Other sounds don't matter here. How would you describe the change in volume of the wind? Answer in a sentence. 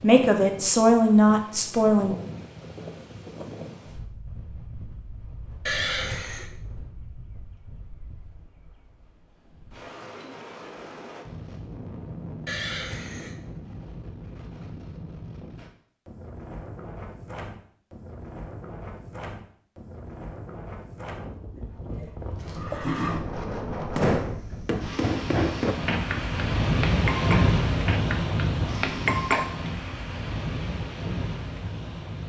The loudness of the wind goes up.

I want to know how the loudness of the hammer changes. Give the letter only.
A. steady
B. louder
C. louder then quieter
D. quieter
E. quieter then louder
A.